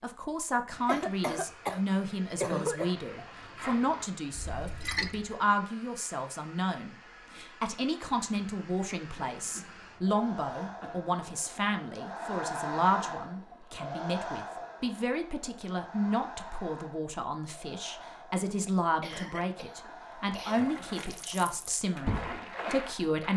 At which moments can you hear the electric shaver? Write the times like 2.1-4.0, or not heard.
not heard.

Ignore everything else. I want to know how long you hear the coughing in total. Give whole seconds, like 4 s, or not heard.
5 s.